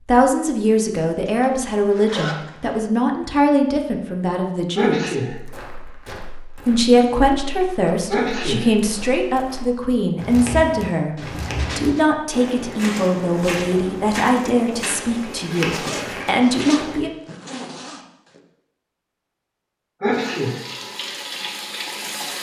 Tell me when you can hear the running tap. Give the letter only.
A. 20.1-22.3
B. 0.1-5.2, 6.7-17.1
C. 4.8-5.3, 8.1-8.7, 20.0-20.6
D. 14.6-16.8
A.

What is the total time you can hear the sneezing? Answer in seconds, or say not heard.
2 s.